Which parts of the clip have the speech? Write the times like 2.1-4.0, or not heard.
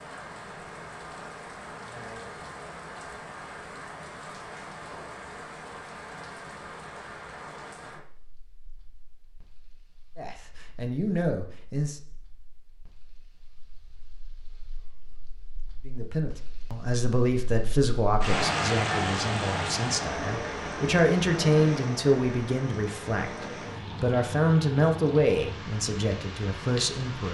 10.2-12.0, 15.8-27.2.